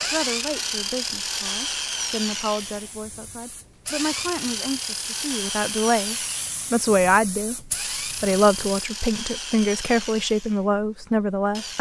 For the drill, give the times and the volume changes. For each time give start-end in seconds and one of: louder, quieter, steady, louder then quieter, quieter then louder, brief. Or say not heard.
0.0-11.7 quieter.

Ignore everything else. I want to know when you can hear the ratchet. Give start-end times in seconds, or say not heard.
not heard.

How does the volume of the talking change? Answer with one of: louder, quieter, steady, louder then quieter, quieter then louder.
louder.